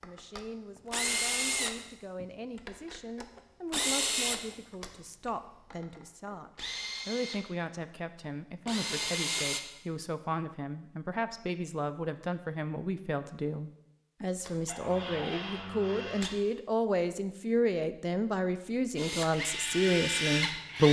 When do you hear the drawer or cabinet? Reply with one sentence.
The drawer or cabinet can be heard from 14.7 to 16.4 s.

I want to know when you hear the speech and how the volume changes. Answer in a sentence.
The speech can be heard from 0.0 to 20.8 s, getting louder.